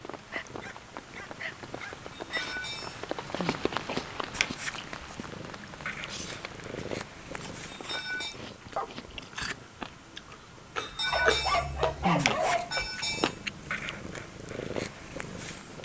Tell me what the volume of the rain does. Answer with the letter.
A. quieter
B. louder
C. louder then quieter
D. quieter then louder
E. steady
C.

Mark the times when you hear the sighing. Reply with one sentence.
The sighing can be heard from 2.1 to 3.6 s, from 7.7 to 8.3 s and from 10.8 to 13.3 s.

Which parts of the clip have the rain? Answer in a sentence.
The rain can be heard from 0.0 to 8.2 s.